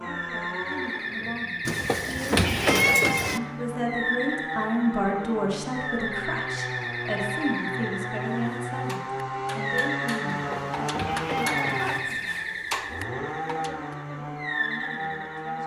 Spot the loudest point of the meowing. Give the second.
3 s.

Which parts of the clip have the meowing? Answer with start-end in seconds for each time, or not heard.
1.6-3.4, 10.3-12.0.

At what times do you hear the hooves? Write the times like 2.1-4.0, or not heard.
not heard.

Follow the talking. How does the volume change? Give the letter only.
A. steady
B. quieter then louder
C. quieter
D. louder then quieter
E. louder
D.